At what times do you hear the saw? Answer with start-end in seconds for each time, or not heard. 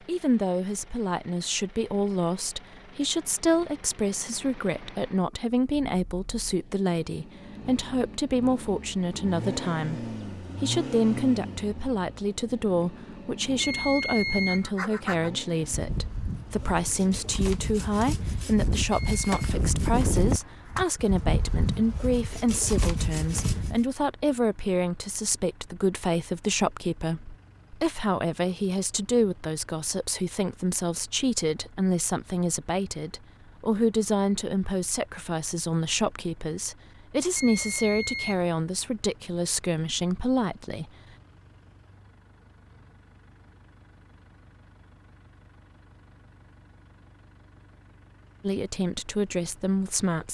14.6-23.8.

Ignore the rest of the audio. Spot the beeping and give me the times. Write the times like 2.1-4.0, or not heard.
13.6-14.7, 18.9-19.4, 37.4-38.5.